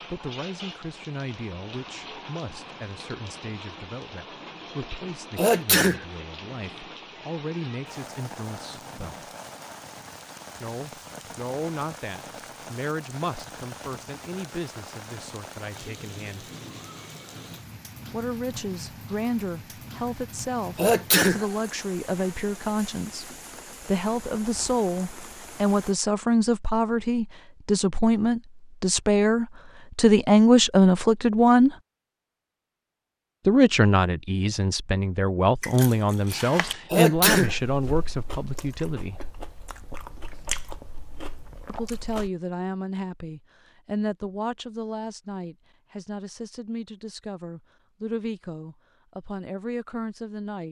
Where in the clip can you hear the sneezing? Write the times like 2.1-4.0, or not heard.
5.3-6.0, 20.8-21.4, 36.9-37.5.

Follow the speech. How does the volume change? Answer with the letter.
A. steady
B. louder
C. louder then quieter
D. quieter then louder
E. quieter
C.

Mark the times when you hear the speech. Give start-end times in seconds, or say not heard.
0.0-9.3, 10.6-16.4, 18.1-31.7, 33.5-39.2, 41.6-50.6.